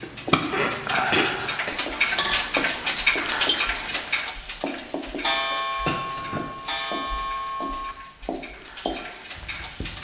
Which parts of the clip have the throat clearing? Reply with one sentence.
The throat clearing can be heard from 0.3 to 1.8 s and from 5.8 to 6.4 s.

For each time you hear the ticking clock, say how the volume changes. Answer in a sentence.
The ticking clock can be heard from 0.0 to 9.9 s, getting quieter.